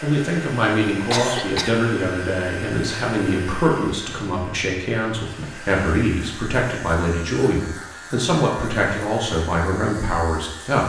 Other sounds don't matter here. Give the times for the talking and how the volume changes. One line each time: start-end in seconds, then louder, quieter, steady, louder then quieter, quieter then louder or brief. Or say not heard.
0.0-10.8 steady.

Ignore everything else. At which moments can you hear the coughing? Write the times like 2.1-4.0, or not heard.
1.1-1.8.